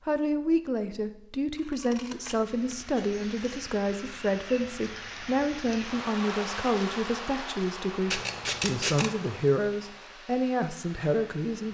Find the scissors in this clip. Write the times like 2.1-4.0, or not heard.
1.6-3.6, 8.1-9.2.